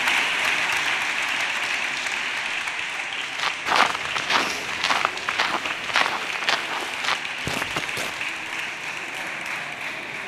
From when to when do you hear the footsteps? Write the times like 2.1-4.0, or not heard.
3.1-8.2.